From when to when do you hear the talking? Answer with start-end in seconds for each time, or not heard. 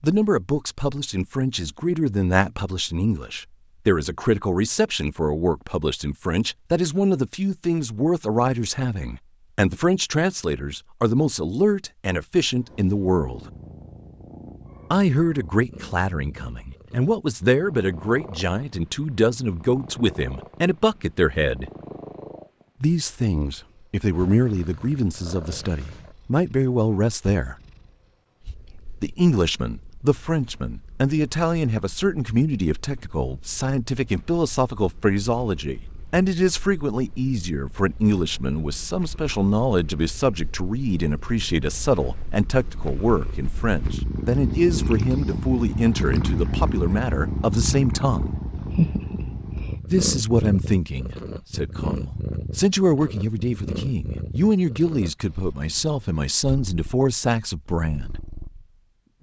0.0-13.4, 14.9-21.7, 22.8-27.6, 29.0-48.4, 49.9-58.1.